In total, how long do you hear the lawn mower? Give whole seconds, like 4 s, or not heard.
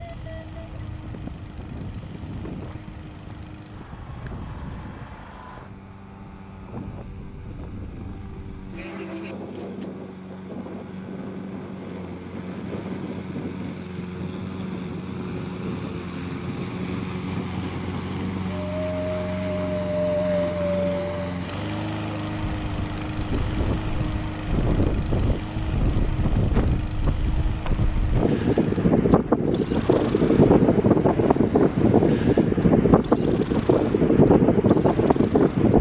36 s.